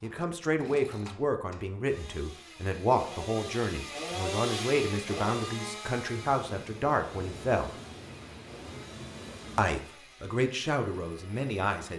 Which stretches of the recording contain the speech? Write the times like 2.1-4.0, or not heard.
0.0-7.7, 9.6-11.9.